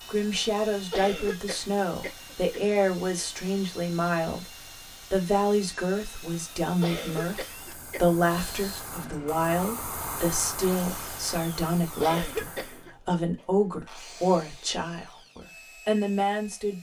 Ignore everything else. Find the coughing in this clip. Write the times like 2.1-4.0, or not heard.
0.9-2.8, 6.8-8.2, 12.0-12.9.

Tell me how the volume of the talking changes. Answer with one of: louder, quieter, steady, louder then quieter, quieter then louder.
steady.